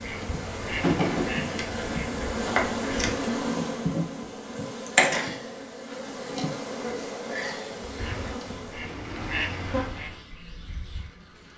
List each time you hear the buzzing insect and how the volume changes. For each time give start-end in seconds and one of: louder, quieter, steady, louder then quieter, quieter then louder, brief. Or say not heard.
0.0-11.5 quieter.